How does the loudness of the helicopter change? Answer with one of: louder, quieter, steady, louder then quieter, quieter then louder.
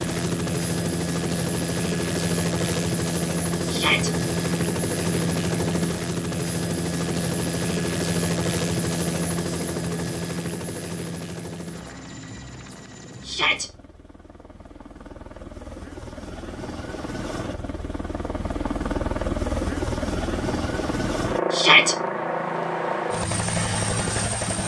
quieter then louder.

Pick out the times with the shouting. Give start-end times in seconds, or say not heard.
3.6-4.1, 13.2-13.7, 21.5-21.9.